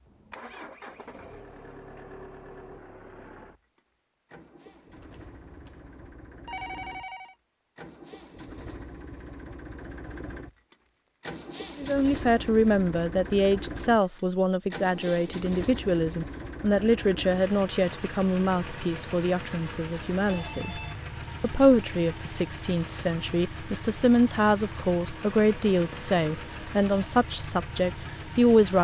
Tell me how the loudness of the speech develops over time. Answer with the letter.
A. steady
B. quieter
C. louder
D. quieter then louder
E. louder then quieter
A.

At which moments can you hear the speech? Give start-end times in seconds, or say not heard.
11.8-20.8, 21.4-28.7.